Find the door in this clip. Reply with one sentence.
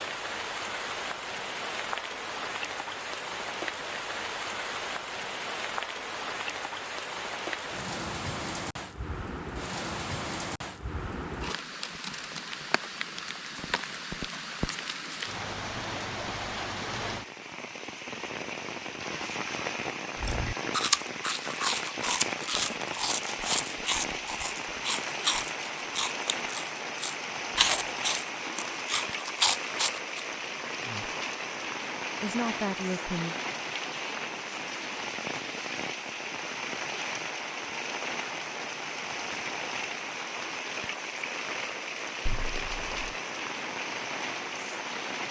You can hear the door from 42.2 to 43.1 s.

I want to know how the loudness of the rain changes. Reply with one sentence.
The loudness of the rain stays about the same.